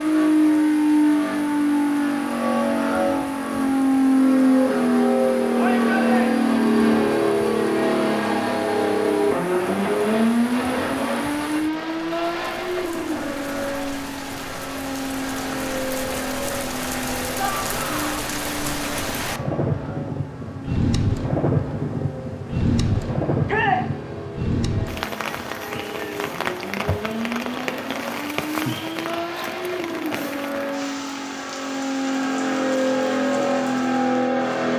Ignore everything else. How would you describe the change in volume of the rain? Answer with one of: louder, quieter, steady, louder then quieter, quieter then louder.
louder then quieter.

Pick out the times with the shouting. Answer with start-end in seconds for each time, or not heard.
5.5-6.5, 17.4-18.2, 23.4-23.9.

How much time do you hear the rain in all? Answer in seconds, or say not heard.
35 s.